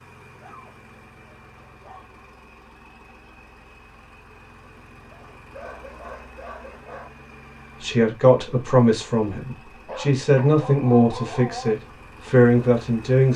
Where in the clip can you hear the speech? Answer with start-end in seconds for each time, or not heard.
7.8-13.3.